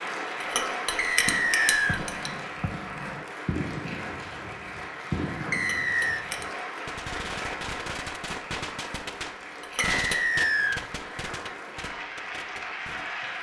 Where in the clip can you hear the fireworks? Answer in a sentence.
The fireworks can be heard from 1.1 to 13.1 s.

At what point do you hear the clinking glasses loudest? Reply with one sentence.
The loudest moment of the clinking glasses is at 1 second.